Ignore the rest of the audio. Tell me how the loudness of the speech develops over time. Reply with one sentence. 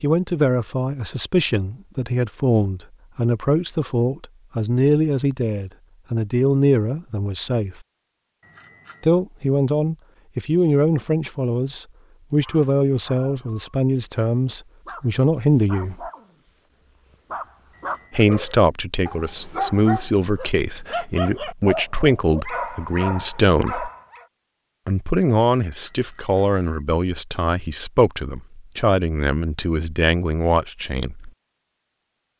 The volume of the speech stays about the same.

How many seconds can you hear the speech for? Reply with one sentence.
The speech can be heard for 27 seconds in total.